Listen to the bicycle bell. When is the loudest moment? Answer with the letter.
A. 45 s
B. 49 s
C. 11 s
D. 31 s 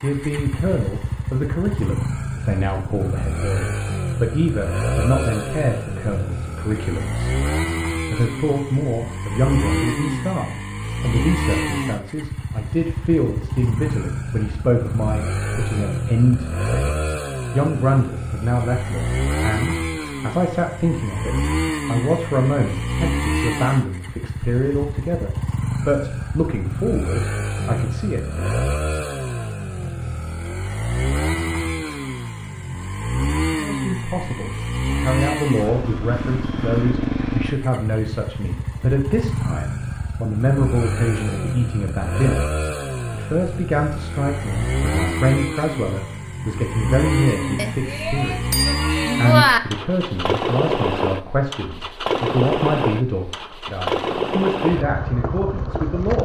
B.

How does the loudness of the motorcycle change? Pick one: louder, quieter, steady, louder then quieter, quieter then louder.
steady.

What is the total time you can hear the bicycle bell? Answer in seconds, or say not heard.
2 s.